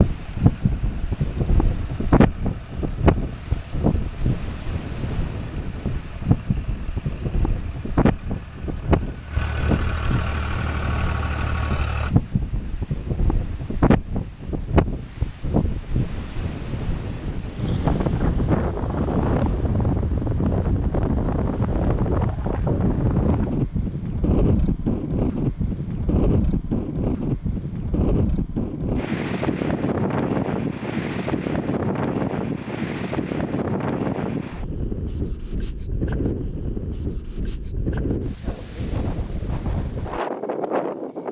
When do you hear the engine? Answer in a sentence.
The engine can be heard from 0.1 to 12.2 s.